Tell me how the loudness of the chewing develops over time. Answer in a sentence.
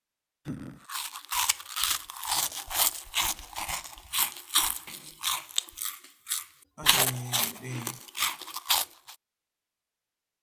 The volume of the chewing stays about the same.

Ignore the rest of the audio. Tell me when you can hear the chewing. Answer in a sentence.
The chewing can be heard from 0.8 to 9.2 s.